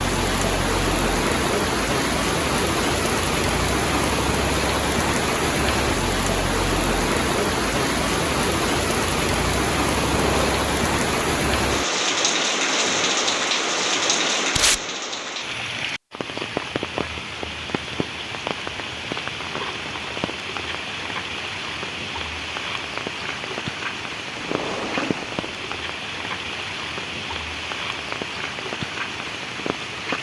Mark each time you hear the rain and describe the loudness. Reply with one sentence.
The rain can be heard from 0.0 to 30.1 s, getting quieter.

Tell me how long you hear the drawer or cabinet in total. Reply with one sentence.
You can hear the drawer or cabinet for 2 seconds altogether.